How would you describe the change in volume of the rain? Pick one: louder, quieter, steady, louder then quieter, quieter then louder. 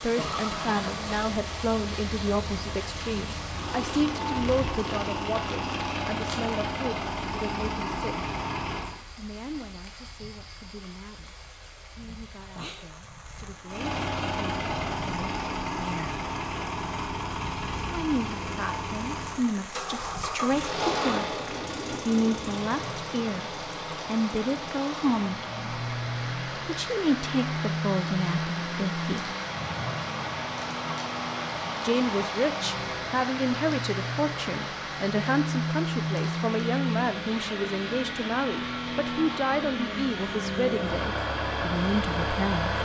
quieter then louder.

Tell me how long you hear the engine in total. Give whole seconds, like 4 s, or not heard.
38 s.